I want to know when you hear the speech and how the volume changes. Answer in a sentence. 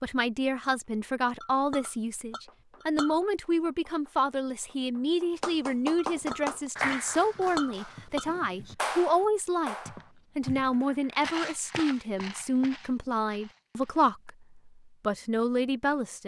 The speech can be heard from 0.0 to 16.2 s, at a steady volume.